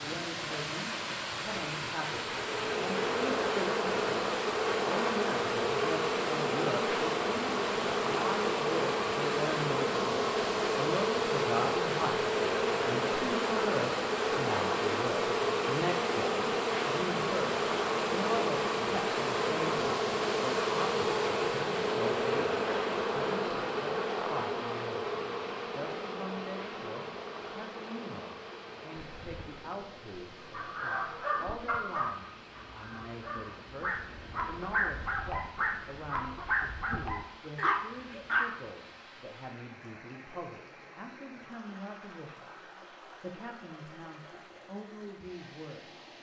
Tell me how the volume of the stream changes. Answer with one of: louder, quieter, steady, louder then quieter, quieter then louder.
quieter.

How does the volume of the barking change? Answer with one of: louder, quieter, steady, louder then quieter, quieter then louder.
quieter then louder.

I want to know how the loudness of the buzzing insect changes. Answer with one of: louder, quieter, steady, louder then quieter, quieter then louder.
quieter.